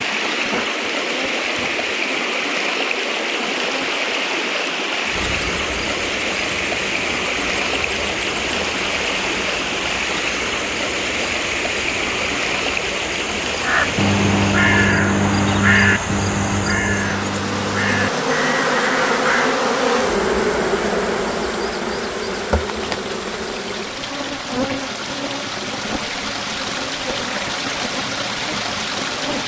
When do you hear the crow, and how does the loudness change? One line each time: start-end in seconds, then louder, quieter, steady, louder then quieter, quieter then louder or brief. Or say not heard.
13.6-19.6 quieter.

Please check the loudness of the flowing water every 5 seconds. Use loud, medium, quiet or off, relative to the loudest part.
loud, loud, loud, medium, medium, loud.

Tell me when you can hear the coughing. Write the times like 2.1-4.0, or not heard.
not heard.